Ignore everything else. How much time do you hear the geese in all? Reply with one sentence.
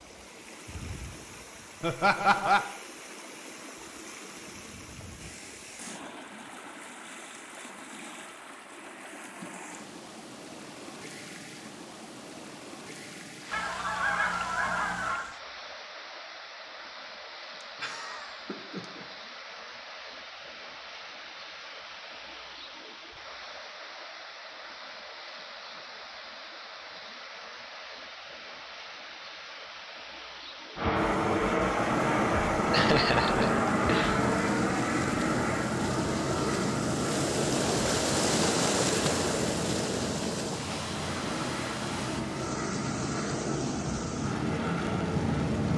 The geese can be heard for 2 seconds in total.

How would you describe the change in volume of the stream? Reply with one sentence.
The volume of the stream goes up.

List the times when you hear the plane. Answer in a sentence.
The plane can be heard from 30.8 to 45.7 s.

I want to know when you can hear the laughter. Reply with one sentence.
You can hear the laughter from 1.8 to 2.6 s, from 17.6 to 19.1 s and from 32.7 to 34.2 s.